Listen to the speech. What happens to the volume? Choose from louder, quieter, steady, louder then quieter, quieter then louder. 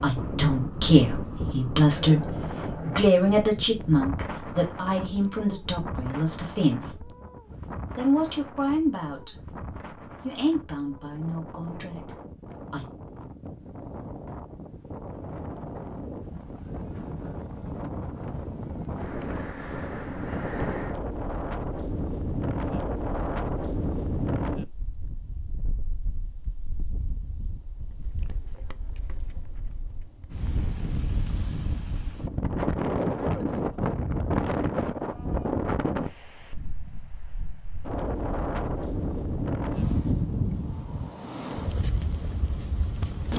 quieter.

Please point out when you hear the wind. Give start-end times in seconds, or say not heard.
0.0-43.3.